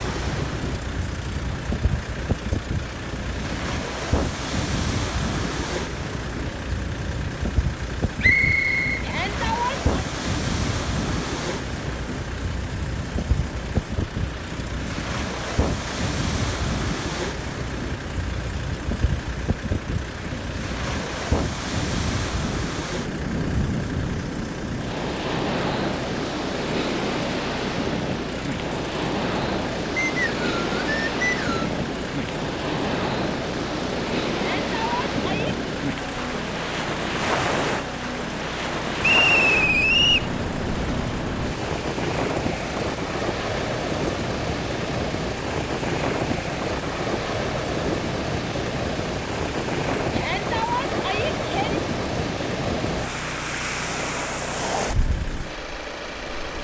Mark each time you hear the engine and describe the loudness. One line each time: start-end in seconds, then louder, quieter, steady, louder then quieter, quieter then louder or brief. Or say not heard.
0.2-56.5 steady.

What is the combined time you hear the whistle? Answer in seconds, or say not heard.
4 s.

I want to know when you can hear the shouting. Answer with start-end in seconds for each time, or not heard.
9.0-9.8, 34.3-35.5, 50.1-51.8.